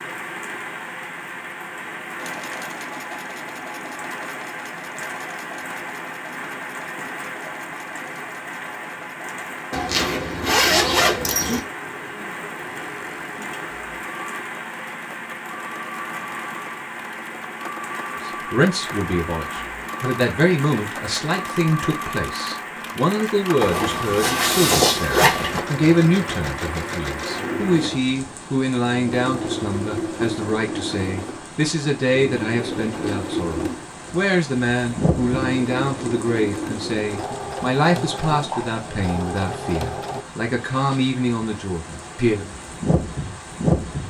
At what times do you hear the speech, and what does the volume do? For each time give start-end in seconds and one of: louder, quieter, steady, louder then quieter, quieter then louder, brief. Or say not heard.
18.2-42.5 steady.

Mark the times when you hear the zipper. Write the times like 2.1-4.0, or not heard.
9.7-11.6, 23.6-25.6.